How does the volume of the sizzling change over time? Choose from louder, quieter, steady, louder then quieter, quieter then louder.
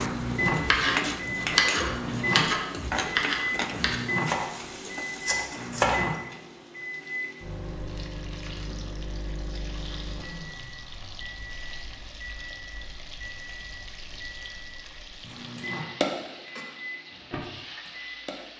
quieter.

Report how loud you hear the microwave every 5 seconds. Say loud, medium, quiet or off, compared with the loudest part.
loud, medium, quiet, medium.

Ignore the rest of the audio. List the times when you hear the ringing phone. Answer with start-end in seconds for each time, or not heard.
not heard.